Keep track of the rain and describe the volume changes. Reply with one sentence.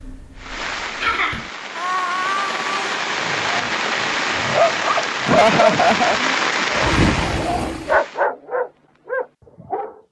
The volume of the rain goes up.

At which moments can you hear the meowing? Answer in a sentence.
You can hear the meowing from 1.8 to 2.9 s.